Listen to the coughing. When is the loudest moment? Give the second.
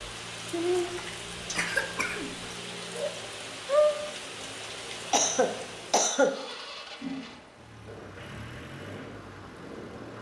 6 s.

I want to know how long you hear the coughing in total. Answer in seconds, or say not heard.
3 s.